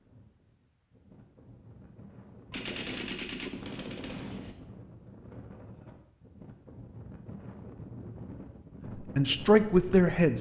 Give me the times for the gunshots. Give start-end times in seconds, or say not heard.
2.5-4.5.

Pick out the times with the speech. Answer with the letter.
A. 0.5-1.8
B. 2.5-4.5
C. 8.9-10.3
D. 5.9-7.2
C.